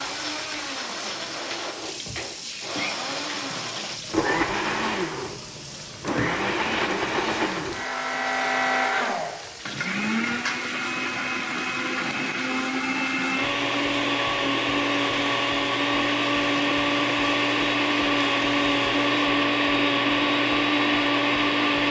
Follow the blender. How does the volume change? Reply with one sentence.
The volume of the blender goes up.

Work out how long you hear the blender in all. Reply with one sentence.
You can hear the blender for 22 seconds altogether.